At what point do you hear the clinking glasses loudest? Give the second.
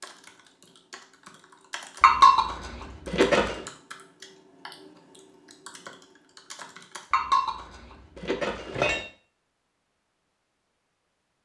2 s.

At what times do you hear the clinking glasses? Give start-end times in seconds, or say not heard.
2.0-3.6, 7.1-9.1.